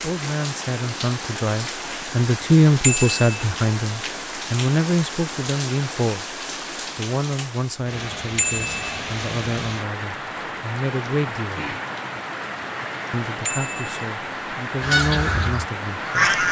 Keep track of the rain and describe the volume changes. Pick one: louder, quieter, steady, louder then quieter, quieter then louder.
steady.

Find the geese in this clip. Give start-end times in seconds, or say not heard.
14.8-16.4.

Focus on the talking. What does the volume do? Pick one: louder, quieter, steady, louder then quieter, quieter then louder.
quieter.